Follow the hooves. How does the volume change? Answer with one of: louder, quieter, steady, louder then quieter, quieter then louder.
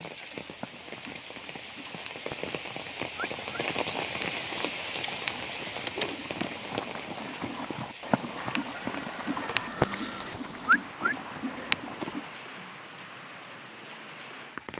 louder.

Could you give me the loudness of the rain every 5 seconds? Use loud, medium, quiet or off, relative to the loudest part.
loud, loud, medium.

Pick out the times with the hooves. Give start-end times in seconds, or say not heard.
0.2-12.3.